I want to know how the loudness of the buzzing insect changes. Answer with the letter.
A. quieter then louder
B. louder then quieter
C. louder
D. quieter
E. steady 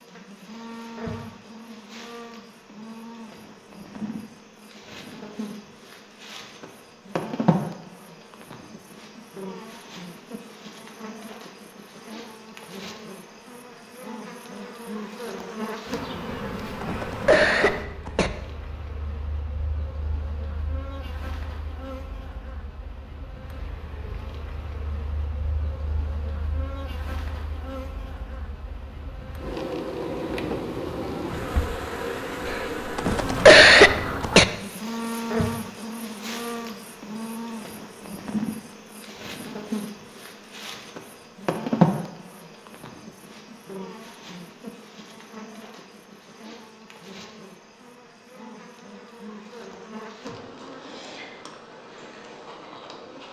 B.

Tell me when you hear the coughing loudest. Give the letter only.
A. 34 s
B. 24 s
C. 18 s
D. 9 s
A.